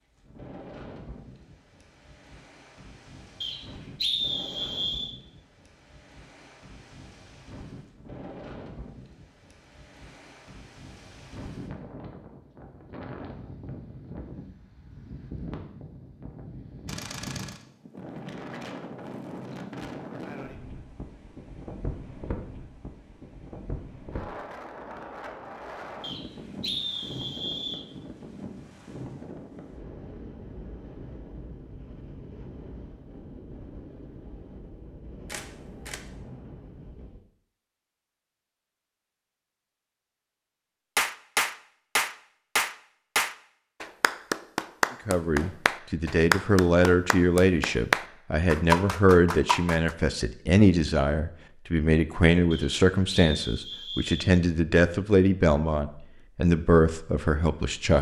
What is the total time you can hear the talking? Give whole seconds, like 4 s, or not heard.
13 s.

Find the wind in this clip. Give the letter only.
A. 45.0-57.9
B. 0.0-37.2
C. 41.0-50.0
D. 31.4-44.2
B.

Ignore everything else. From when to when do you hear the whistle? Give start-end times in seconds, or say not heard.
3.4-5.1, 26.0-27.9, 52.5-54.3.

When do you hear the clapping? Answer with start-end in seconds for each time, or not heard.
41.0-50.0.